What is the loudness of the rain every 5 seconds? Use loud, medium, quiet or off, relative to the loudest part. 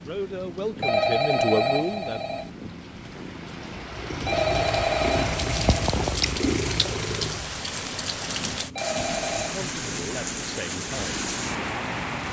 medium, loud, loud.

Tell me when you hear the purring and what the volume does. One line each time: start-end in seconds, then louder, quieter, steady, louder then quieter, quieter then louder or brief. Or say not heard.
0.0-12.2 louder then quieter.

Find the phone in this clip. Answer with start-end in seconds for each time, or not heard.
0.8-2.5, 4.2-5.7, 8.8-9.6.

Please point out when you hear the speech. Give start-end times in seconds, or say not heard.
0.0-2.2, 9.3-11.2.